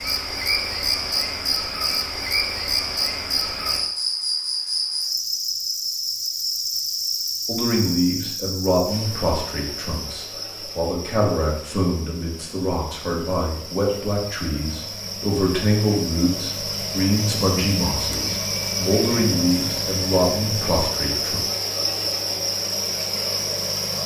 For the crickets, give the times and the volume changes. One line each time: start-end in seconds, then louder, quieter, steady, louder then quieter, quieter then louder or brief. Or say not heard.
0.0-24.0 quieter then louder.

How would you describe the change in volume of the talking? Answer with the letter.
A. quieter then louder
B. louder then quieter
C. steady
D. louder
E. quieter
C.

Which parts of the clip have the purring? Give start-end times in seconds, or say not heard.
not heard.